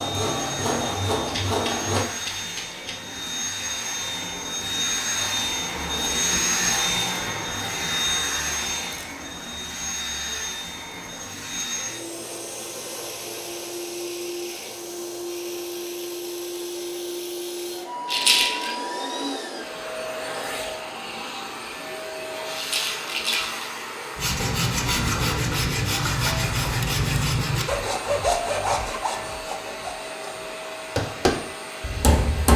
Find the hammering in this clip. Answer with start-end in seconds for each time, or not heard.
30.9-32.5.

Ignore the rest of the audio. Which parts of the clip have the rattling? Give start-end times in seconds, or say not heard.
1.2-3.0, 18.1-18.8, 22.6-23.7.